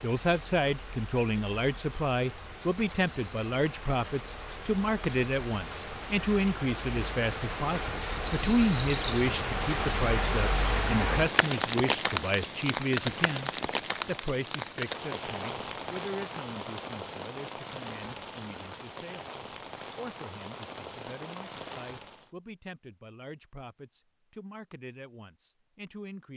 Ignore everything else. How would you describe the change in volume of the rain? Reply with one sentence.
The volume of the rain goes up, then down.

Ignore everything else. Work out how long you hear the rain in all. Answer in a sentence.
The rain can be heard for 22 seconds in total.